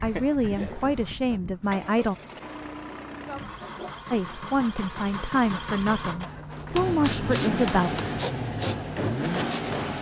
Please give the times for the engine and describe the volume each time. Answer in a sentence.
You can hear the engine from 0.0 to 9.9 s, getting louder.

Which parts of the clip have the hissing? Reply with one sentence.
The hissing can be heard from 0.0 to 9.9 s.